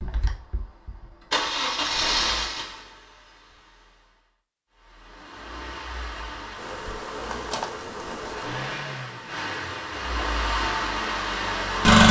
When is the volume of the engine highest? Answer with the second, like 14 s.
12 s.